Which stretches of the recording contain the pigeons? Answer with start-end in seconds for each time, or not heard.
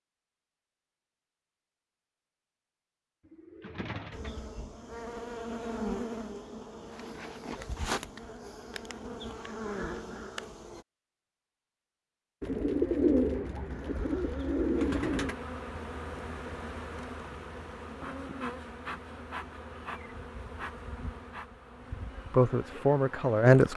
3.2-4.3, 12.4-15.3.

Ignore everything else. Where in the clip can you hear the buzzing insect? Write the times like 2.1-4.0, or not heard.
4.1-10.8, 13.7-23.7.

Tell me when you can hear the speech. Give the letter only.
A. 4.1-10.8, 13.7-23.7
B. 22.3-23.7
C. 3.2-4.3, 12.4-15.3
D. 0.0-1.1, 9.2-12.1
B.